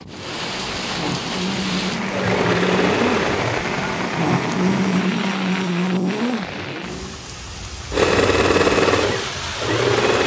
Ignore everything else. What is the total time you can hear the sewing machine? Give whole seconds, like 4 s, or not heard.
4 s.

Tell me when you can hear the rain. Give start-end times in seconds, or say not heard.
0.0-10.2.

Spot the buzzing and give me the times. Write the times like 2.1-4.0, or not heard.
0.0-7.2.